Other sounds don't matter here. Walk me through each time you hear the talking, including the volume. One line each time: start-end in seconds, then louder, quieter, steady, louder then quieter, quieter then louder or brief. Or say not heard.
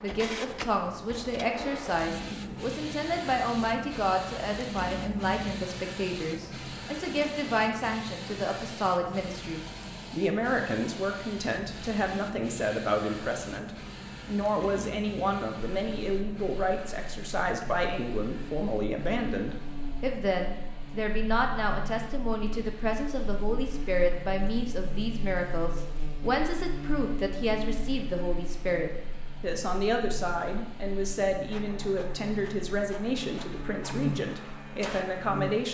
0.0-35.6 steady.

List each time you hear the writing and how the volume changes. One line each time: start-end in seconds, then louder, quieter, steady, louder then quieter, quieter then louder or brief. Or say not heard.
not heard.